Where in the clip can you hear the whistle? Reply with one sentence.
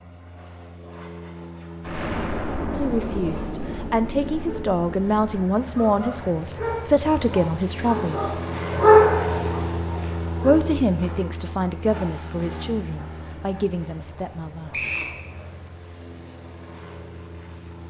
The whistle can be heard from 14.7 to 15.2 s.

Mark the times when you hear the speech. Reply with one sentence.
The speech can be heard from 2.7 to 8.3 s and from 10.4 to 14.8 s.